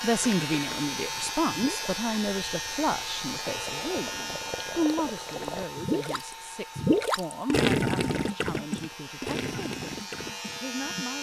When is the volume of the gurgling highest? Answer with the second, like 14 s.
8 s.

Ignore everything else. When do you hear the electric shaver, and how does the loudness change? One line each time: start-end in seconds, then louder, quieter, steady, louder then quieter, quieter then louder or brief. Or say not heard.
0.0-11.1 quieter then louder.